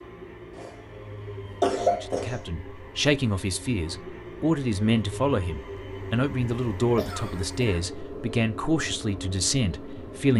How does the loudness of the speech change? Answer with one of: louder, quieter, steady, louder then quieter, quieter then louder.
steady.